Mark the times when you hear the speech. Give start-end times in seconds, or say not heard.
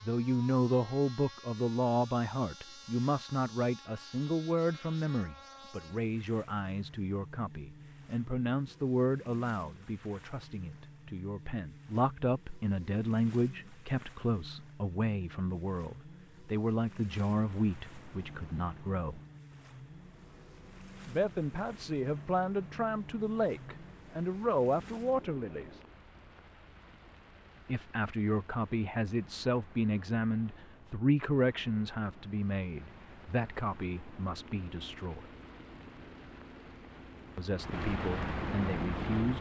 0.0-19.2, 21.1-25.7, 27.6-35.2, 37.4-39.3.